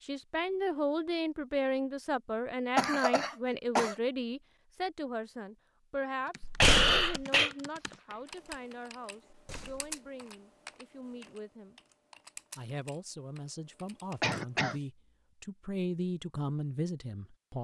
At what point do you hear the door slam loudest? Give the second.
7 s.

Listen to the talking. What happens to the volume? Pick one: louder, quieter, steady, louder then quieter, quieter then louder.
quieter then louder.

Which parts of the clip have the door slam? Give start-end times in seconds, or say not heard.
6.4-7.0, 9.3-10.0.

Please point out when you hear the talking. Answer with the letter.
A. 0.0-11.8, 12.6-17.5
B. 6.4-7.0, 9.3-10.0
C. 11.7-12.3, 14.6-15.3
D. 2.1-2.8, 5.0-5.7
A.